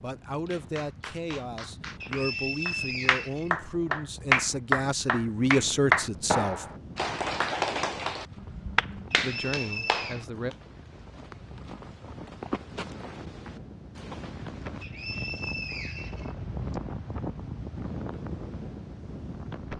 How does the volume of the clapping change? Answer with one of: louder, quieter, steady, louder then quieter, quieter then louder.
louder then quieter.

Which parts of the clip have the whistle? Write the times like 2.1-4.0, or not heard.
2.0-3.5, 9.1-10.2, 14.8-16.8.